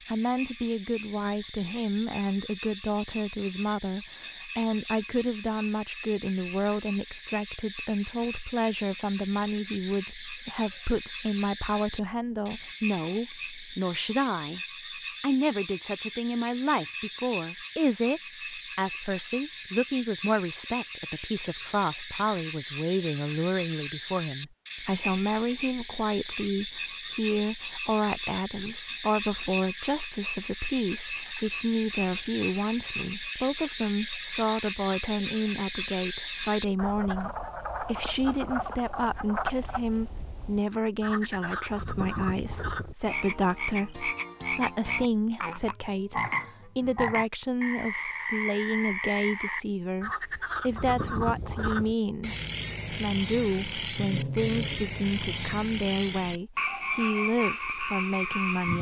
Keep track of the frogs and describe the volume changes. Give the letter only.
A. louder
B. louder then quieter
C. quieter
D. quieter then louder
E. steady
A.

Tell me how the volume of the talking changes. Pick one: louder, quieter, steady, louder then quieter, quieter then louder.
steady.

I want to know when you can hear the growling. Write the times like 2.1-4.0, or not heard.
53.4-54.8.